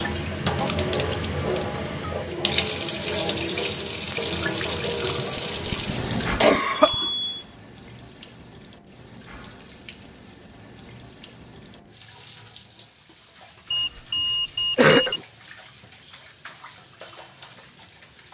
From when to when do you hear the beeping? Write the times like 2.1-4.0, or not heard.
0.6-2.1, 6.7-7.5, 13.7-15.2.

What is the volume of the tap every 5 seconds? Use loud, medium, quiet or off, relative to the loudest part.
loud, medium, quiet, quiet.